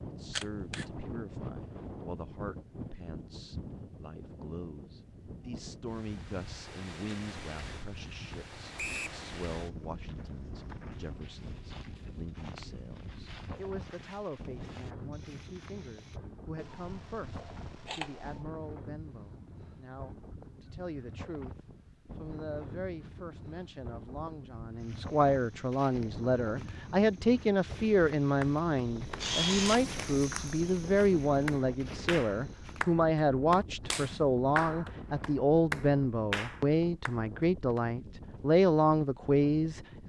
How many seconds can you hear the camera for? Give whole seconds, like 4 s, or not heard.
3 s.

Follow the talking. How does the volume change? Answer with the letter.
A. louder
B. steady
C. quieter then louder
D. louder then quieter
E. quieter
A.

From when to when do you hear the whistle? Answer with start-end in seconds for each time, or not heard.
8.8-9.2.